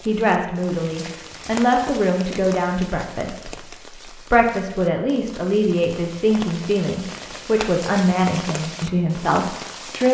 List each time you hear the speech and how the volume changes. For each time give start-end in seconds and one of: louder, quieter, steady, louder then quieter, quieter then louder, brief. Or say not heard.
0.1-10.0 steady.